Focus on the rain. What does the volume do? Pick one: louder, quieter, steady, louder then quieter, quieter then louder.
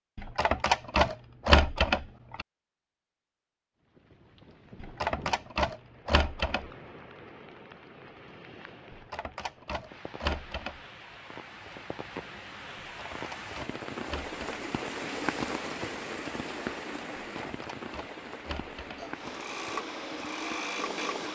louder then quieter.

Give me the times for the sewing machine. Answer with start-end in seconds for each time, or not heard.
18.8-21.2.